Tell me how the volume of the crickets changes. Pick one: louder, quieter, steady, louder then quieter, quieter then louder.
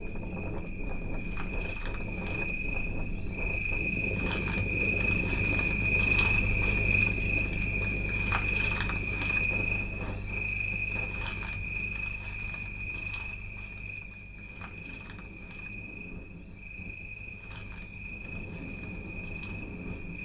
louder then quieter.